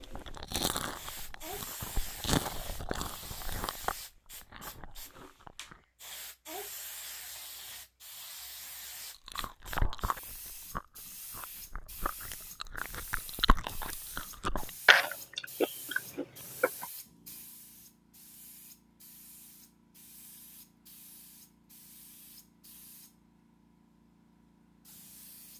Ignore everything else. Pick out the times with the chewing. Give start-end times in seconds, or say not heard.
0.0-5.8, 9.2-16.9.